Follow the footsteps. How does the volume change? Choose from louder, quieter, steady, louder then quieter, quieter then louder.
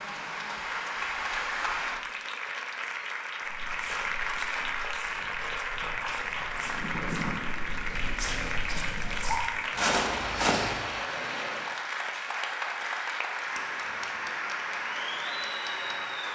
louder.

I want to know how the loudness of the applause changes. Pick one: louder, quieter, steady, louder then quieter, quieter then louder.
steady.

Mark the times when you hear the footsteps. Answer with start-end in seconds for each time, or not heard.
3.5-10.8.